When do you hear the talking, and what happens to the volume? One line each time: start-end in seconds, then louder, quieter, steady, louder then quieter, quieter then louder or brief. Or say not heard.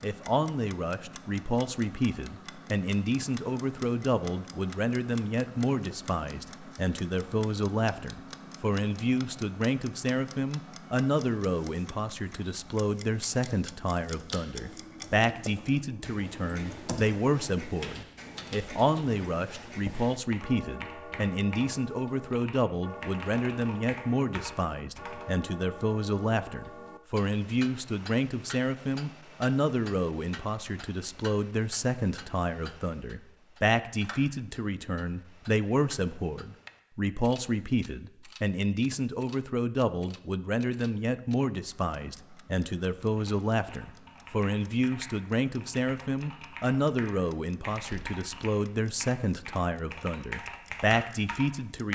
0.0-51.9 steady.